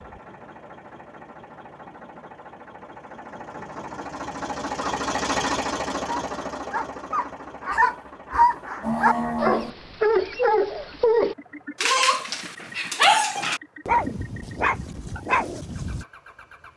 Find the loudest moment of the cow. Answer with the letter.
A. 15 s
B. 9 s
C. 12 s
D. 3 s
B.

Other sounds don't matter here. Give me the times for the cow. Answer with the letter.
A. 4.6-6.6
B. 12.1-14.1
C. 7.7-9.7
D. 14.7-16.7
C.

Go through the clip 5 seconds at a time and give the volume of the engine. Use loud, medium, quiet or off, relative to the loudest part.
medium, loud, quiet, quiet.